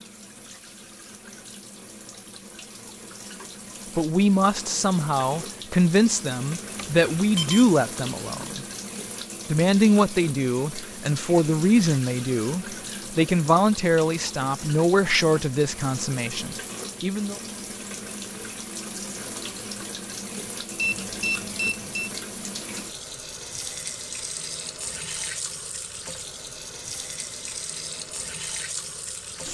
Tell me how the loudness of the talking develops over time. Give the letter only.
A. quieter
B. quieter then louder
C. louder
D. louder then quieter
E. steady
E.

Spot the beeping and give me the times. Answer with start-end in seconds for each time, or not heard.
6.8-7.7, 20.8-22.1.